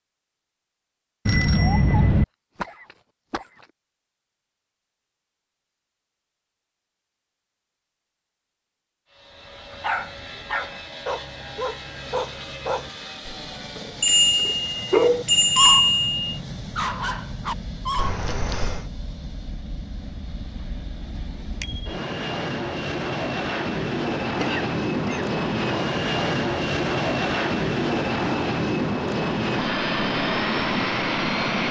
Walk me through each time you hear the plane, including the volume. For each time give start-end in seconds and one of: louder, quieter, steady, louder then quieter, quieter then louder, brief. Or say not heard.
9.1-31.6 louder.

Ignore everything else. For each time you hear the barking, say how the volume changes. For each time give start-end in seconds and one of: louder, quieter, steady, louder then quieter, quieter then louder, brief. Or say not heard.
9.7-16.0 quieter then louder
16.8-18.2 brief.